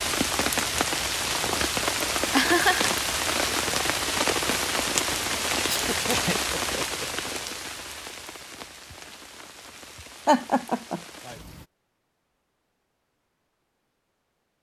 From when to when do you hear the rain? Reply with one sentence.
The rain can be heard from 0.0 to 11.7 s.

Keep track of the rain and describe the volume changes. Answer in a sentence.
The loudness of the rain goes down.